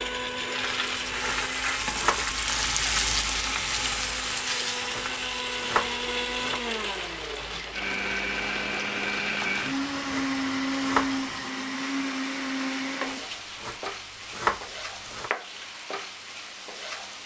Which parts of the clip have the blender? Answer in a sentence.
You can hear the blender from 0.0 to 13.2 s.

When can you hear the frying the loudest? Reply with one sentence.
The loudest moment of the frying is at 3 seconds.